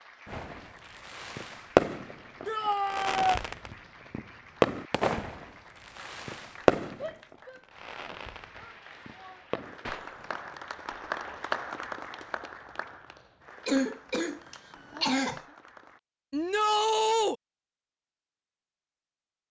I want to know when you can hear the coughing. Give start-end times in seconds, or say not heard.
13.7-15.4.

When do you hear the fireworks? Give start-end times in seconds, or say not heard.
0.2-10.5.